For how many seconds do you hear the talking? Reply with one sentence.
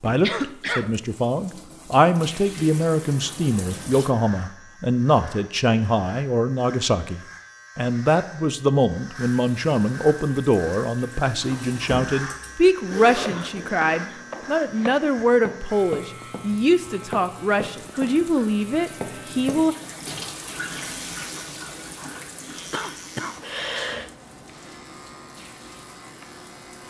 The talking can be heard for 20 seconds in total.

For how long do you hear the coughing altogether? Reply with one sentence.
You can hear the coughing for 3 seconds altogether.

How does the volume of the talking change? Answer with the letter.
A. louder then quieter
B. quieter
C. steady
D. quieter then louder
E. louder
C.